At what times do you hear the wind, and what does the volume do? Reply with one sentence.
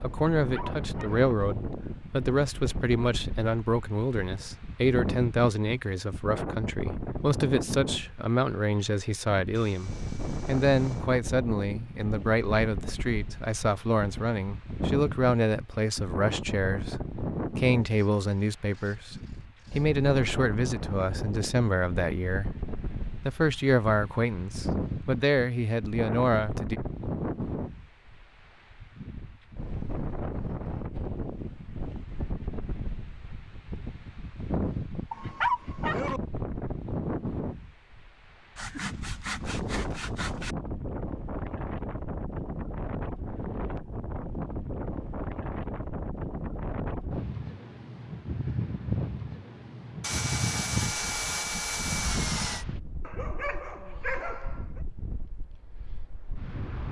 You can hear the wind from 0.0 to 56.8 s, at a steady volume.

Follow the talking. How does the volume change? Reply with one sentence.
The loudness of the talking stays about the same.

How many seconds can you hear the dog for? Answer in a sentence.
The dog can be heard for 4 seconds in total.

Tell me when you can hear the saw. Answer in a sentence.
The saw can be heard from 9.6 to 11.1 s, from 17.8 to 19.9 s, from 38.5 to 40.5 s and from 50.0 to 52.6 s.